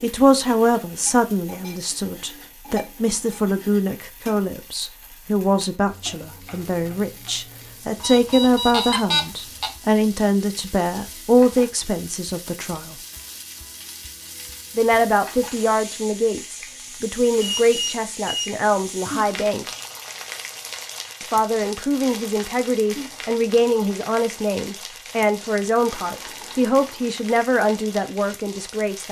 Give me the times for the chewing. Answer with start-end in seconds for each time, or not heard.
not heard.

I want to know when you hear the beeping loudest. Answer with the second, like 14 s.
9 s.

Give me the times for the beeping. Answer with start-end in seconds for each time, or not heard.
8.0-9.7, 17.6-18.5.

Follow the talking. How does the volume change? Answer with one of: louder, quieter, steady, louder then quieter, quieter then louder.
steady.